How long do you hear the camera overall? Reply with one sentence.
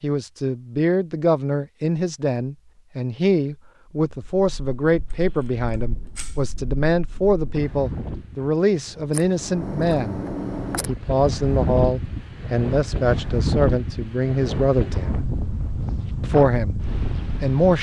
You can hear the camera for 3 seconds altogether.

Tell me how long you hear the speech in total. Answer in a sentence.
You can hear the speech for 16 seconds altogether.